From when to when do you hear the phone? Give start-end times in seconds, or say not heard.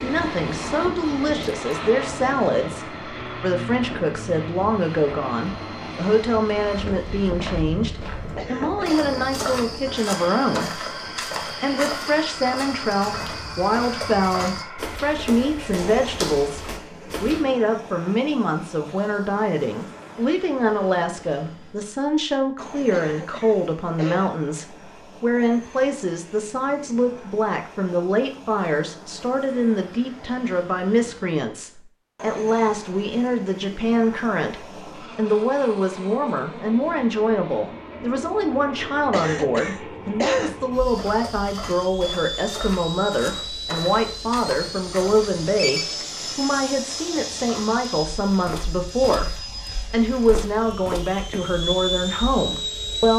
45.0-46.0.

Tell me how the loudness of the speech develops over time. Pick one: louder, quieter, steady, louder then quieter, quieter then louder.
steady.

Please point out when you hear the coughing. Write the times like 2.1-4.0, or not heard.
8.3-9.1, 22.9-24.4, 39.1-40.6.